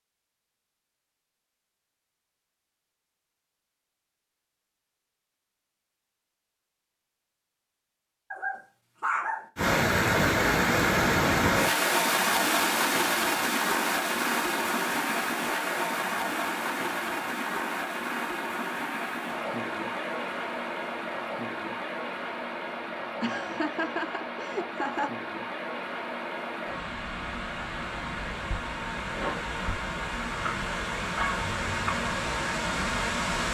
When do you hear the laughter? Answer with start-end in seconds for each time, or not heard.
23.2-25.1.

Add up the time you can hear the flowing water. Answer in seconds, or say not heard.
24 s.